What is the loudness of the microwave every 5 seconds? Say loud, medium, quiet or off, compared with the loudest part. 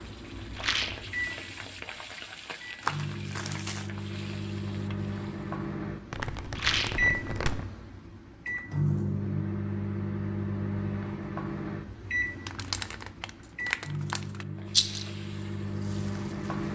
medium, loud, loud, loud.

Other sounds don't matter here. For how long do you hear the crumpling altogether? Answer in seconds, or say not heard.
5 s.